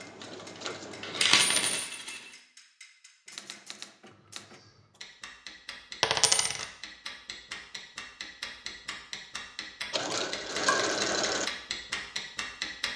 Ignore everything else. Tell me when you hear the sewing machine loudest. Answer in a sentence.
The volume of the sewing machine peaks at 11 seconds.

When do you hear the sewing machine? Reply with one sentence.
The sewing machine can be heard from 0.0 to 1.8 s and from 9.9 to 11.5 s.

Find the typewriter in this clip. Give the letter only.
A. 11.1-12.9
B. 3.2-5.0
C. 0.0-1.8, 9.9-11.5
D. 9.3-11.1
B.